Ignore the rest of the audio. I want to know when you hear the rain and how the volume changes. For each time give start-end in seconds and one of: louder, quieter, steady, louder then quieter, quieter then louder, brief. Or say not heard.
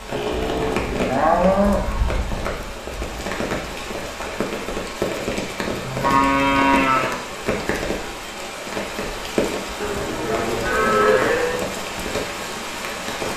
0.0-13.3 steady.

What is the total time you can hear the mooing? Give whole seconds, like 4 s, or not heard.
6 s.